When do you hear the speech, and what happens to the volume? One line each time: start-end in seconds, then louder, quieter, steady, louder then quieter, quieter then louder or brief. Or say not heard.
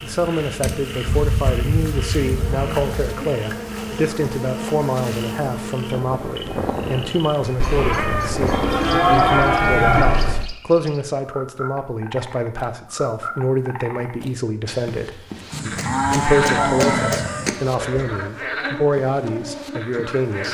0.0-20.4 steady.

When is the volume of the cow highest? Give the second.
9 s.